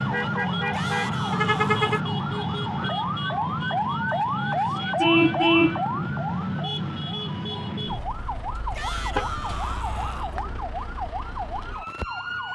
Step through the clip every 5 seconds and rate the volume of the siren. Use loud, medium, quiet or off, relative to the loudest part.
loud, loud, medium.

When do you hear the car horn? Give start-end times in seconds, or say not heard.
1.3-2.0, 5.0-5.8.